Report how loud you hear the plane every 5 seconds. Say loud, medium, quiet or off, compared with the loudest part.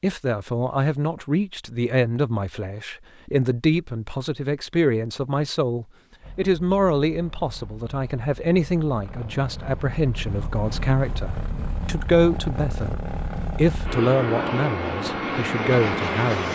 off, quiet, medium, loud.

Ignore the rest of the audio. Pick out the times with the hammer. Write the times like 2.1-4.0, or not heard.
not heard.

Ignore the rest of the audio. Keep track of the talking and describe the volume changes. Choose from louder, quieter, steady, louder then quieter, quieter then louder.
steady.